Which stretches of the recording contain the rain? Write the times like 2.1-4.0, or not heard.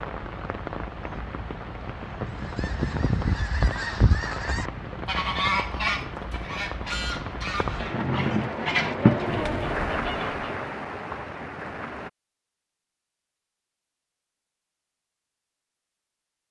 0.0-12.1.